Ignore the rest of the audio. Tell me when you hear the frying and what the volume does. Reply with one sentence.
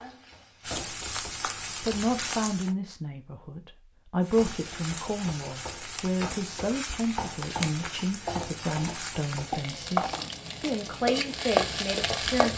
You can hear the frying briefly from 0.0 to 2.8 s; and from 4.2 to 12.5 s, getting louder.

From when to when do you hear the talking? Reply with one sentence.
The talking can be heard from 1.8 to 12.5 s.